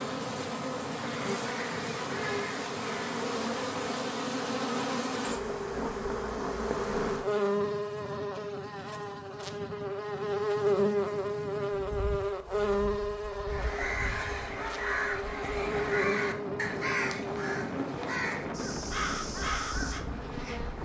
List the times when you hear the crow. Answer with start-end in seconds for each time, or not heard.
13.4-20.1.